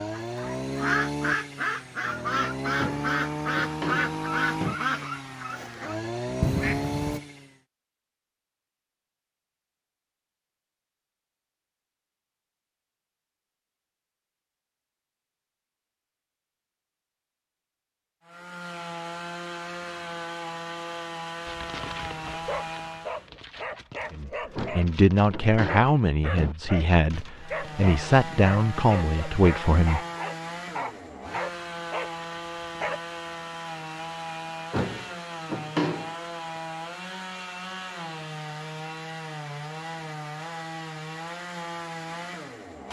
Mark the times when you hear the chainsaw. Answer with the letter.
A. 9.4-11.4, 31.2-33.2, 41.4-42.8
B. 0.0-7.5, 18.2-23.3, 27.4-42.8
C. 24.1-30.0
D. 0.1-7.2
B.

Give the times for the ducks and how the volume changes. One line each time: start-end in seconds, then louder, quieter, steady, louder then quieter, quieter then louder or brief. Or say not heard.
0.1-7.2 steady.